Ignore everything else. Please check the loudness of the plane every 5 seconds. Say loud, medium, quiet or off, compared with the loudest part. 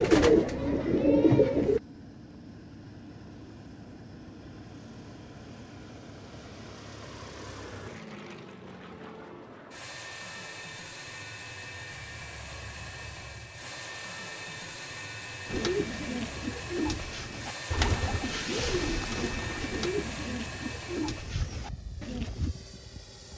medium, medium, loud, loud, loud.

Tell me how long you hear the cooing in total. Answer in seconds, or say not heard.
9 s.